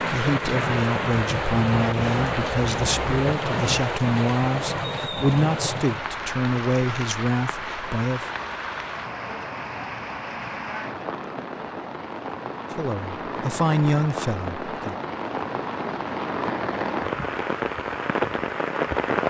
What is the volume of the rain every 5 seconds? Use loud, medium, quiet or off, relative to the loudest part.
loud, medium, medium, loud.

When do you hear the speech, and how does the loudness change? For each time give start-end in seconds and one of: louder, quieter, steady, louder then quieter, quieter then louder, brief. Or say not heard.
0.0-8.2 steady
12.8-14.9 brief.